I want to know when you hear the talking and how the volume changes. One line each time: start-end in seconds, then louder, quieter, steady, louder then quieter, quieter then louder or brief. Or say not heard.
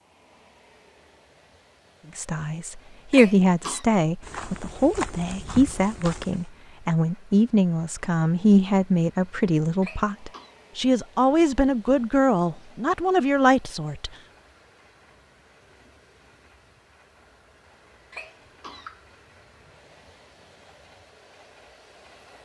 2.1-14.1 steady.